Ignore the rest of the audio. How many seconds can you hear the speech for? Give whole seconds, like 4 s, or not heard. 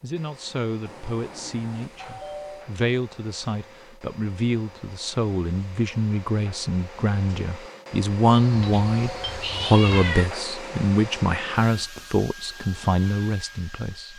14 s.